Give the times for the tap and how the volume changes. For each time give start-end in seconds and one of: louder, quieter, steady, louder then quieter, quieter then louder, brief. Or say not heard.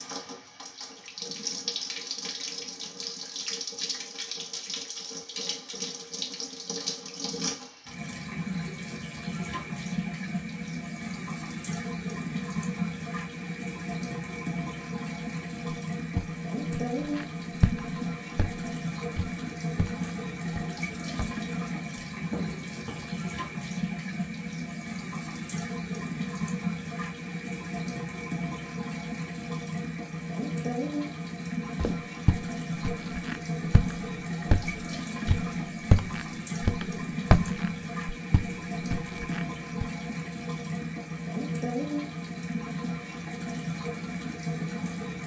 0.0-45.2 steady.